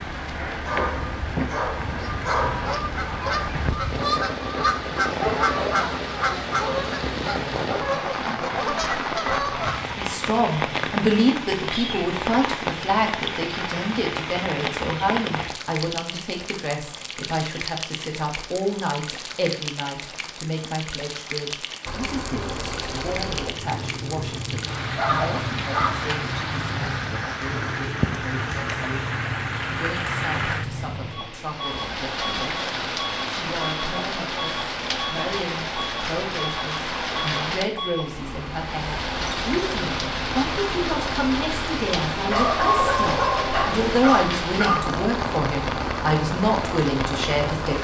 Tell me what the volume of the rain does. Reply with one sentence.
The loudness of the rain stays about the same.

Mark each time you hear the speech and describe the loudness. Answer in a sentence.
You can hear the speech from 9.9 to 47.7 s, getting quieter then louder.